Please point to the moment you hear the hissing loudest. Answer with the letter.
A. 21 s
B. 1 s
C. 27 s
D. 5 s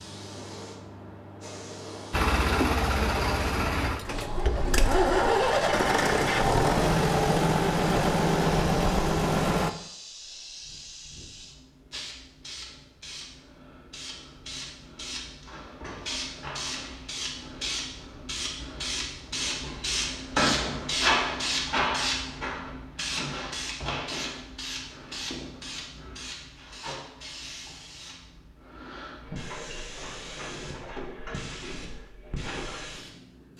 A.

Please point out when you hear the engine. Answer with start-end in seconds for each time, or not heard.
2.1-9.7.